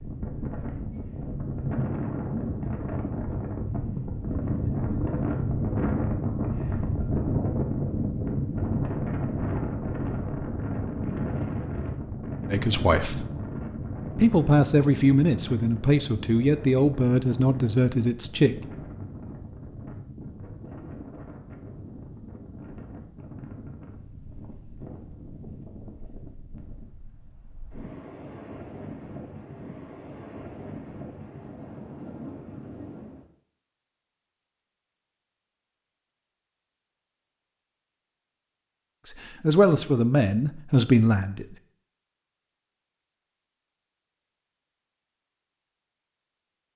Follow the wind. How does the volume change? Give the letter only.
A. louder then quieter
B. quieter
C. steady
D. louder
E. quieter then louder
B.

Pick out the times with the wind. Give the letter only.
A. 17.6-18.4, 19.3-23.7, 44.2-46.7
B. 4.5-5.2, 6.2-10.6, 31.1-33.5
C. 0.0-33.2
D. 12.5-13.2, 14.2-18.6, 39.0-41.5
C.